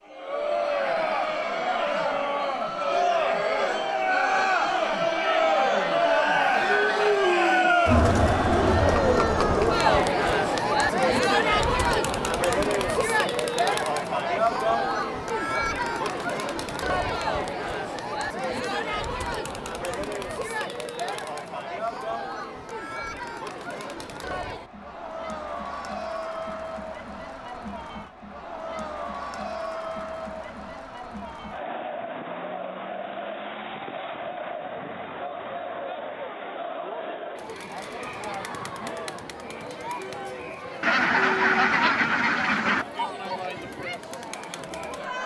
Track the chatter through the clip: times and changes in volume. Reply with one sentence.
The chatter can be heard from 0.1 to 45.2 s, getting quieter.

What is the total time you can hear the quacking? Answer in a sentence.
You can hear the quacking for 2 seconds altogether.